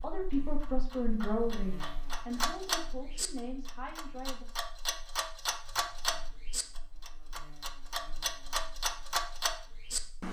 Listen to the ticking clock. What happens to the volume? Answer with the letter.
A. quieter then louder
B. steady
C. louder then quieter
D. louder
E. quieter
D.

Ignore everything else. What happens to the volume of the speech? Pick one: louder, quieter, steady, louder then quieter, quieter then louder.
quieter.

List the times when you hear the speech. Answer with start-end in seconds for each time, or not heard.
0.0-4.5.